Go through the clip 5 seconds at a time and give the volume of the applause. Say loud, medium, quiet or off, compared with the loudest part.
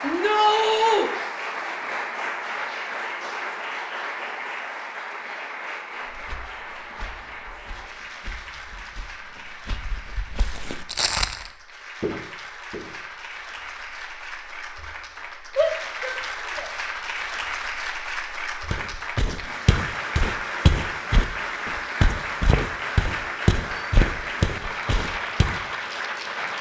loud, medium, medium, loud, loud, loud.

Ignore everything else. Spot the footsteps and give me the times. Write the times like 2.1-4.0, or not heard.
6.0-12.9, 18.7-25.6.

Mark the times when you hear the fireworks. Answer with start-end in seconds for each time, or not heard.
not heard.